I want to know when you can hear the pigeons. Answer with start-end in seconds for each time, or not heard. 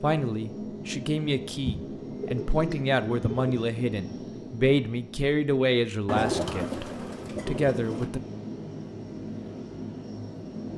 1.6-3.5, 6.0-8.1.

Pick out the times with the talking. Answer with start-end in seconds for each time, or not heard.
0.0-8.2.